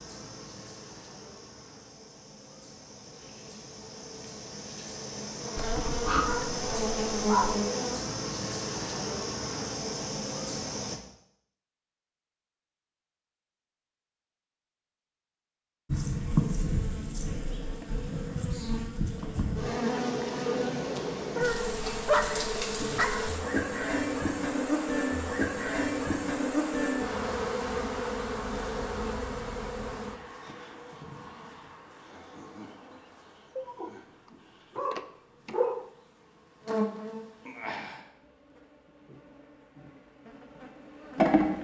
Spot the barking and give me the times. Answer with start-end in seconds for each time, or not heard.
5.5-7.6, 21.4-23.3, 33.5-34.0, 34.8-35.9.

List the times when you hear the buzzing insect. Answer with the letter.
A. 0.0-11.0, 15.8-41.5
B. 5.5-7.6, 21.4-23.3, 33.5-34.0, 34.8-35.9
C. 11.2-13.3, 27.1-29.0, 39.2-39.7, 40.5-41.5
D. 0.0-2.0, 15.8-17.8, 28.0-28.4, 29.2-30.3
A.